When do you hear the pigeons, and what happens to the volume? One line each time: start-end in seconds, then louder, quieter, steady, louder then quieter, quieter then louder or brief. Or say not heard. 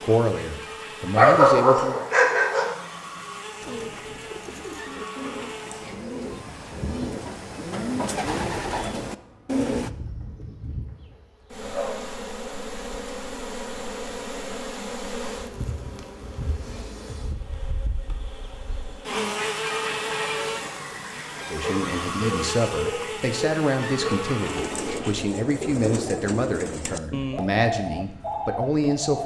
3.6-9.9 louder
24.4-29.2 steady.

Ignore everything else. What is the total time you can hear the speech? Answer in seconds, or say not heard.
10 s.